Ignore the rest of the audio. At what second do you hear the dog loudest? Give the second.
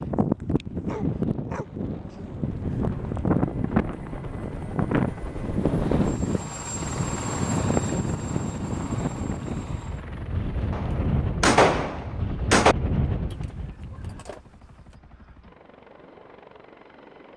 1 s.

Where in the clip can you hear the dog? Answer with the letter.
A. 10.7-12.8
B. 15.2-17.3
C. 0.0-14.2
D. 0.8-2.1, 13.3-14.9
D.